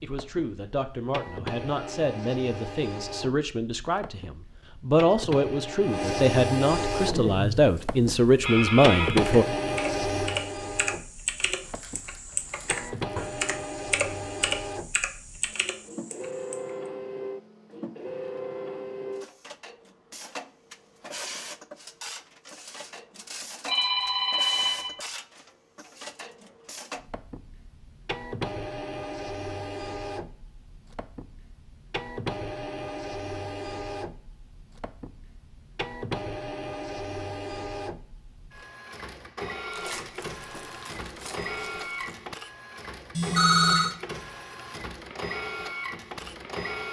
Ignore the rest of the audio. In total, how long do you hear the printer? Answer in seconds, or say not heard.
47 s.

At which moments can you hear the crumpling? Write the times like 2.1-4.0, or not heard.
11.6-13.2, 39.7-42.2.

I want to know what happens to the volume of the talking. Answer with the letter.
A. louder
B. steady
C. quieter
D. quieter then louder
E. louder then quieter
A.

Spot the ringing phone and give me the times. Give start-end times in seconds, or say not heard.
8.4-9.2, 23.6-24.9, 43.1-44.0.